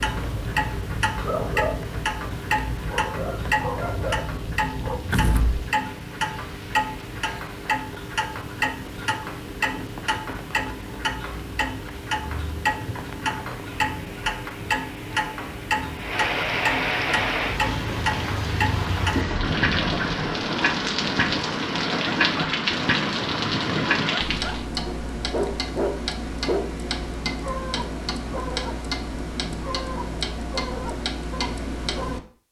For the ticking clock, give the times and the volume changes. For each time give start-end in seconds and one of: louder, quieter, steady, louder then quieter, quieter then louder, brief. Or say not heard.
0.0-32.2 steady.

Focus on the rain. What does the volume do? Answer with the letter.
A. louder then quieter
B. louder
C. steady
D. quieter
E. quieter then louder
B.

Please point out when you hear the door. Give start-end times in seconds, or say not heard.
5.1-5.7.